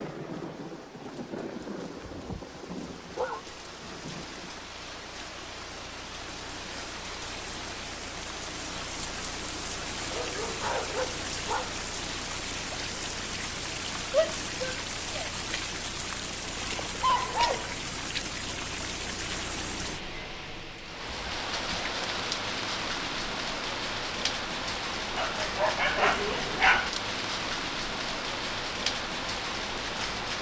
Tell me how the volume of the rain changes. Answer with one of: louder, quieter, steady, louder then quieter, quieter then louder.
louder.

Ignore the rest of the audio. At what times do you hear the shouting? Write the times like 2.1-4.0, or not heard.
14.1-15.3.